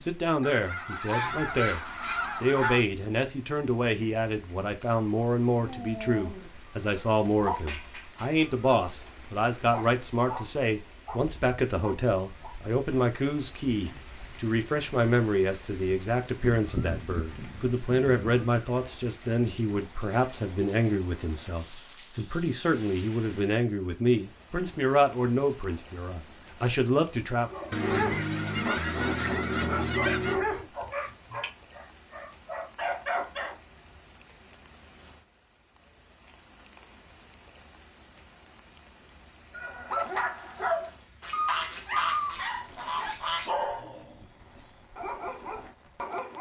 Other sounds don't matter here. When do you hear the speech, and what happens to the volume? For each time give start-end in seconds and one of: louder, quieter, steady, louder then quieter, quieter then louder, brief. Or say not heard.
0.1-1.8 brief
2.4-27.5 steady.